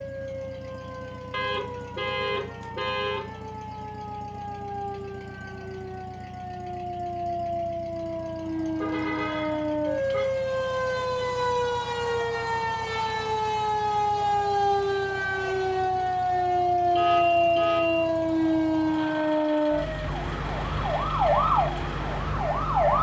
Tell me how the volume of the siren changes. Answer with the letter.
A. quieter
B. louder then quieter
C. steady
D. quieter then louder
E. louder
E.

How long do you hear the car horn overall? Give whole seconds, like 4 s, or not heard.
5 s.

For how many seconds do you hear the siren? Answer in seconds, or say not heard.
23 s.